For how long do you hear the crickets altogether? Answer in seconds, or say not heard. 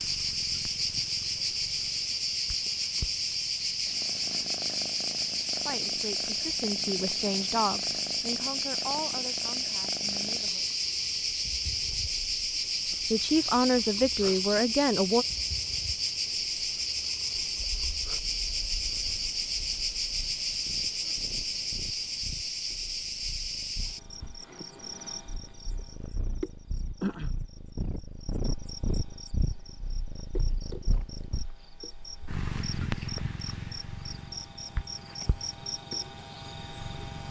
37 s.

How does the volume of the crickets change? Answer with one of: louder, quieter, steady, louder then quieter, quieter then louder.
quieter.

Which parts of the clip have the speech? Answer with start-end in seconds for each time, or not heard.
5.7-10.8, 13.1-15.2.